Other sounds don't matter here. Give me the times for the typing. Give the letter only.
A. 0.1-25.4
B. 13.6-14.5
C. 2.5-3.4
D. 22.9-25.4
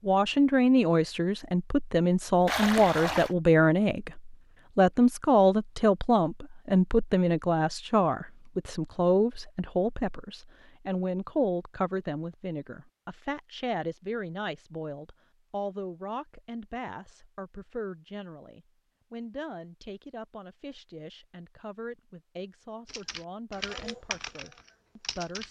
D.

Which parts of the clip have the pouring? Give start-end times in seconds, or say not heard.
2.5-3.4.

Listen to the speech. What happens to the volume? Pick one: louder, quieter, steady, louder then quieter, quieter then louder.
quieter.